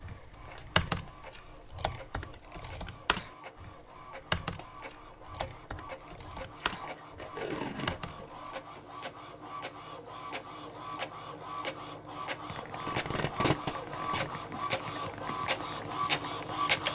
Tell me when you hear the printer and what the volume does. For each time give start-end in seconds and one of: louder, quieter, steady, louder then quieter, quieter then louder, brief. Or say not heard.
0.0-16.8 louder.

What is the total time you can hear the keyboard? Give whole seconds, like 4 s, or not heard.
13 s.